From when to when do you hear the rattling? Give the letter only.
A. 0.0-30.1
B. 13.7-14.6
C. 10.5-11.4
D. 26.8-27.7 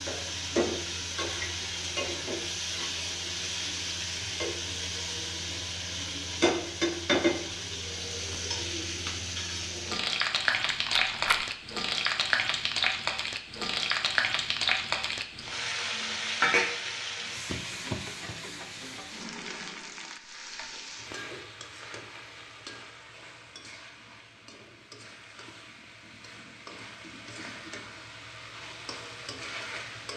C.